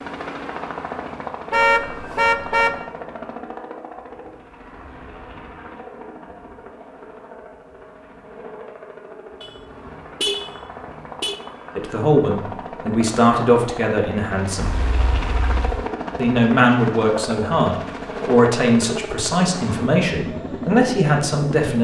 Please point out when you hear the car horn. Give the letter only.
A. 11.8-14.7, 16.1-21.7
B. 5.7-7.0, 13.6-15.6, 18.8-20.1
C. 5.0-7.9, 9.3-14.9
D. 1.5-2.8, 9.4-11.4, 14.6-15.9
D.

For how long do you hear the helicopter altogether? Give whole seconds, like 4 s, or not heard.
22 s.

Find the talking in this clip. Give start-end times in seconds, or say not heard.
11.8-14.7, 16.1-21.7.